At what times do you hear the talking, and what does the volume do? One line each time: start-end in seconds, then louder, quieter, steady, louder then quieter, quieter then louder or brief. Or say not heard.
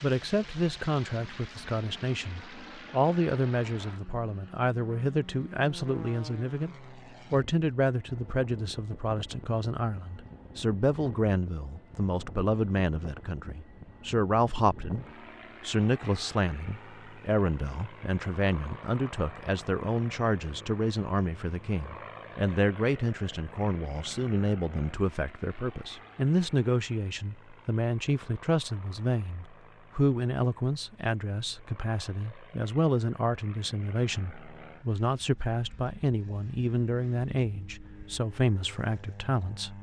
0.0-39.7 steady.